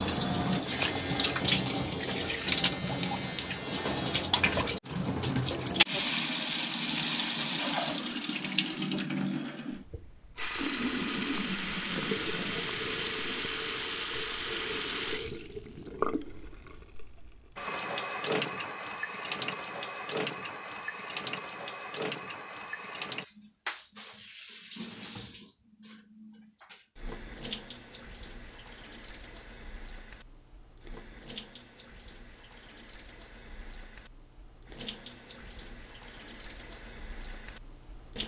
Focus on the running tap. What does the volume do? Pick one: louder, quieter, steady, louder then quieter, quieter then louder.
quieter.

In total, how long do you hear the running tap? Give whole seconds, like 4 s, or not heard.
38 s.